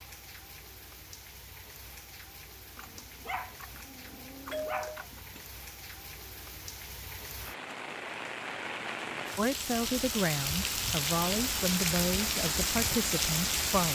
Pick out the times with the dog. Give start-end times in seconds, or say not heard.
2.8-5.5.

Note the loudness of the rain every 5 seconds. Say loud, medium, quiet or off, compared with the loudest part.
quiet, medium, loud.